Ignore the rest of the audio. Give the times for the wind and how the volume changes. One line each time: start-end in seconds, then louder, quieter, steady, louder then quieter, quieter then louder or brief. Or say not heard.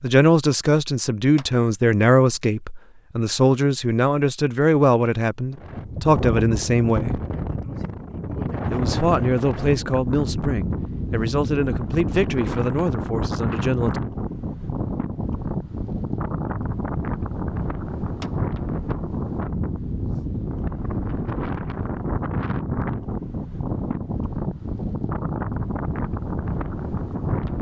5.5-27.5 steady.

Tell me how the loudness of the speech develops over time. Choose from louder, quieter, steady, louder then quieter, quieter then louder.
quieter.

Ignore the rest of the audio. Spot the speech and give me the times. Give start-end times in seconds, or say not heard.
0.0-7.2, 8.7-14.0.